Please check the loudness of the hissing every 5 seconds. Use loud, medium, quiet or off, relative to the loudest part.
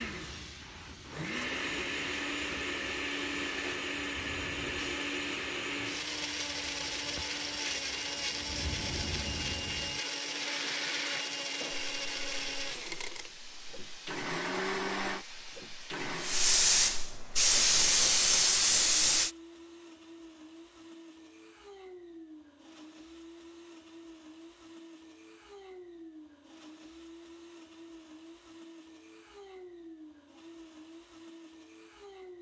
quiet, quiet, quiet, loud, off, off, off.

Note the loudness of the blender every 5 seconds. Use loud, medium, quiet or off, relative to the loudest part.
loud, loud, loud, medium, quiet, quiet, quiet.